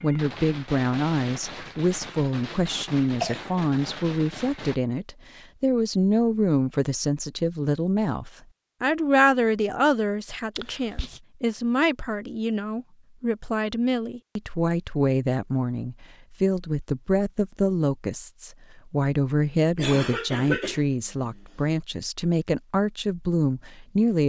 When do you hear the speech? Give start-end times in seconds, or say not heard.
0.0-24.2.